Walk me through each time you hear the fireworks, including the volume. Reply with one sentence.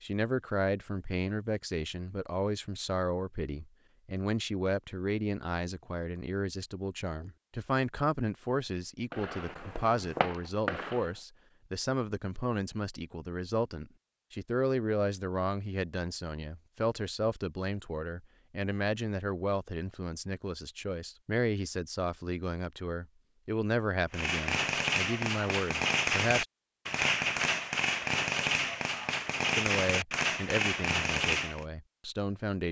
You can hear the fireworks briefly from 9.1 to 11.1 s; and from 24.1 to 31.6 s, at a steady volume.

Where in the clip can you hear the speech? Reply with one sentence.
The speech can be heard from 0.0 to 26.4 s and from 29.6 to 32.6 s.